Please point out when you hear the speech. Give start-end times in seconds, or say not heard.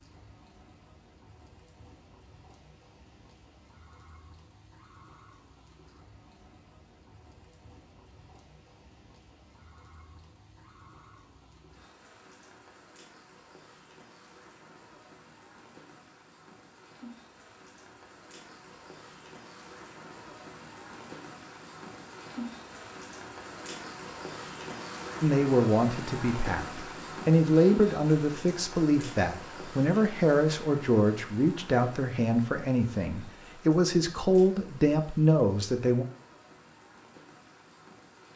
25.2-36.0.